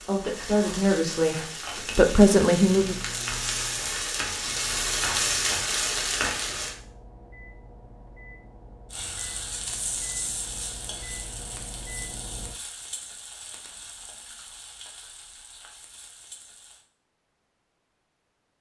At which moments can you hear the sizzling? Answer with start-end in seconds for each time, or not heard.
0.0-6.8, 8.9-16.9.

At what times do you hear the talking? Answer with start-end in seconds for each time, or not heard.
0.0-3.0.